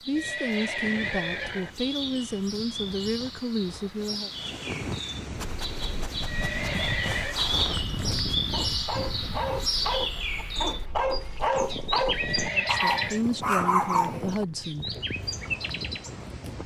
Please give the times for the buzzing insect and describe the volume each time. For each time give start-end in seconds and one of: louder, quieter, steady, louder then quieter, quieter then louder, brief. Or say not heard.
not heard.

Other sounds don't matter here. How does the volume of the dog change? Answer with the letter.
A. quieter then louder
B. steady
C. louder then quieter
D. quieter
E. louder
E.